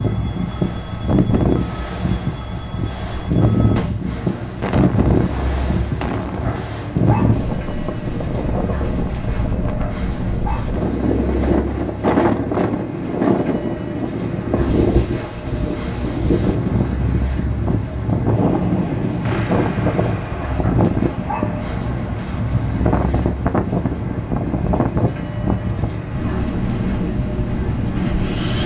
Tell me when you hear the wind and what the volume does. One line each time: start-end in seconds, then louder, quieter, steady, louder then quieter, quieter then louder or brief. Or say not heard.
0.0-28.6 steady.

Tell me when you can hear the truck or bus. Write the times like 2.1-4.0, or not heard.
0.0-28.6.